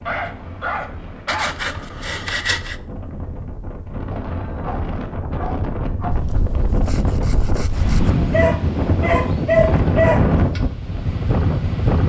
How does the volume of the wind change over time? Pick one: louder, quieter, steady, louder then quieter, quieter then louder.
louder.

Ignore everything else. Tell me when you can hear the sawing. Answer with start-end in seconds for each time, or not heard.
1.2-2.8, 6.1-8.1.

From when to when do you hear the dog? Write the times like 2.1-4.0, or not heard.
0.1-1.6, 4.2-6.2, 8.3-10.2.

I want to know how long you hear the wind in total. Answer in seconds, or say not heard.
12 s.